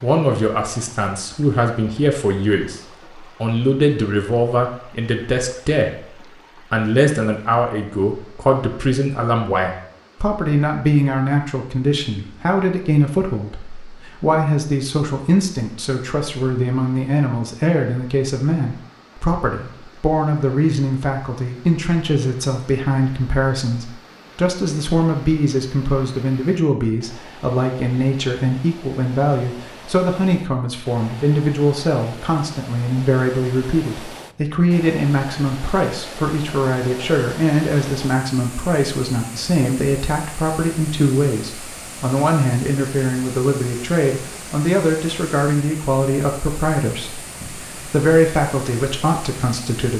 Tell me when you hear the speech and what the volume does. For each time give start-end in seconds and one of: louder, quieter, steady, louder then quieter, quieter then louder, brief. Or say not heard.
0.0-2.8 brief
3.4-5.9 brief
6.7-49.9 steady.